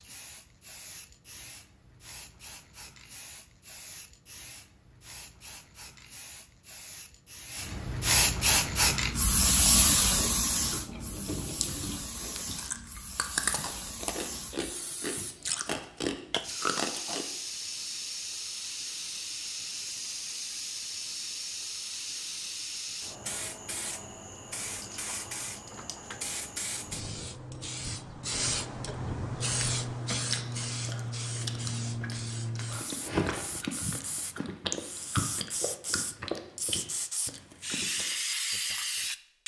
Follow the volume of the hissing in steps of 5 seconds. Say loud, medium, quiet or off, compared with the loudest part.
quiet, loud, medium, medium, medium, medium, medium, medium.